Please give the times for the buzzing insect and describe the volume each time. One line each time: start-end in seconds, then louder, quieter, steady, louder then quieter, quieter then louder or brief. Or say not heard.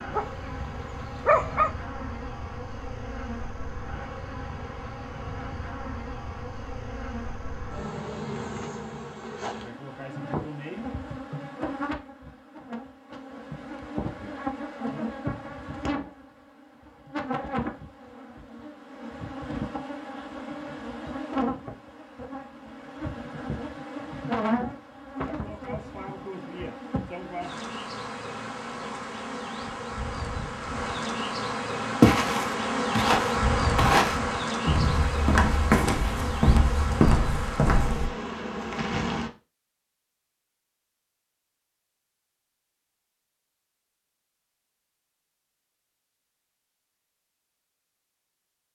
0.0-39.3 louder.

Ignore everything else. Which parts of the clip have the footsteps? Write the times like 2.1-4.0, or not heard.
32.0-38.1.